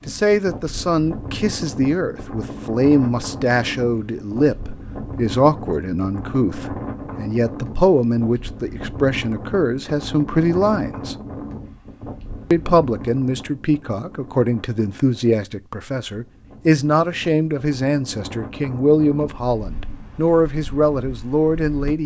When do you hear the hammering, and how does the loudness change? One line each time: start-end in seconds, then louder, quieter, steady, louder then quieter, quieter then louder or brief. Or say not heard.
not heard.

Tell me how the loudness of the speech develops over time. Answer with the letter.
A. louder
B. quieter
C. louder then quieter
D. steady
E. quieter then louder
D.